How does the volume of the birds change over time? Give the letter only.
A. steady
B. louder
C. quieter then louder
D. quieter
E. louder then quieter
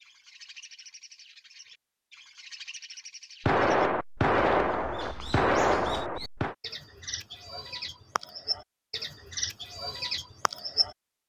B.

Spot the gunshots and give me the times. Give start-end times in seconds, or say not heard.
3.4-6.5.